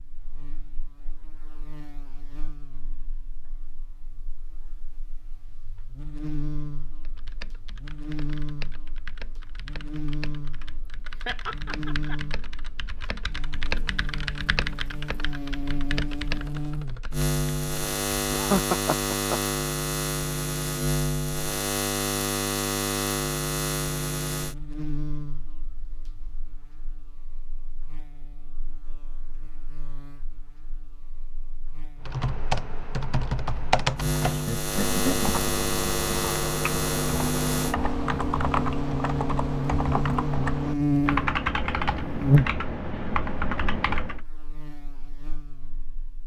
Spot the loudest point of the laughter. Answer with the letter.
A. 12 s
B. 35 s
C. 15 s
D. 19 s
D.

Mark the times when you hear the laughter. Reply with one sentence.
The laughter can be heard from 11.2 to 12.2 s, from 18.3 to 19.4 s and from 34.2 to 35.3 s.